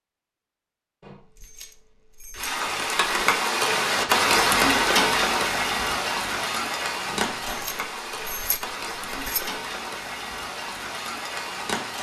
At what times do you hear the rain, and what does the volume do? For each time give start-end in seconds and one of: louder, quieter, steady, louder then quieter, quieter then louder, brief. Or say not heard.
2.3-11.9 quieter.